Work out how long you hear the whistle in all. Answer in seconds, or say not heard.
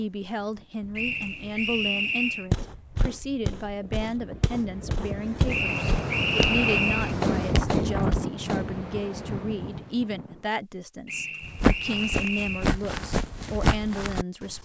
5 s.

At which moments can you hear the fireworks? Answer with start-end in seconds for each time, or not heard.
6.4-8.8.